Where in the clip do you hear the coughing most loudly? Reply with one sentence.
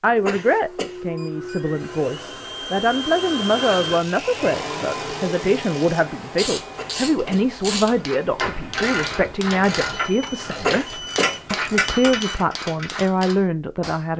The loudest moment of the coughing is at 11 seconds.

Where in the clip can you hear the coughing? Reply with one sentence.
The coughing can be heard from 0.1 to 1.0 s, from 6.7 to 7.5 s and from 10.6 to 11.4 s.